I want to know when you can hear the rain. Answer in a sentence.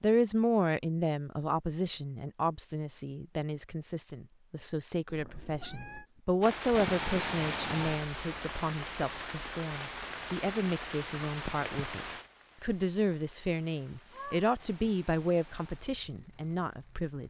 The rain can be heard from 6.4 to 17.2 s.